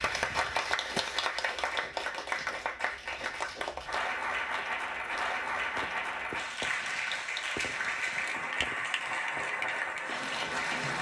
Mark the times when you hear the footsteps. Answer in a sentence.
You can't hear the footsteps here.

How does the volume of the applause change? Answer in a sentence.
The volume of the applause stays about the same.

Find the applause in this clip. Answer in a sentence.
You can hear the applause from 0.0 to 10.9 s.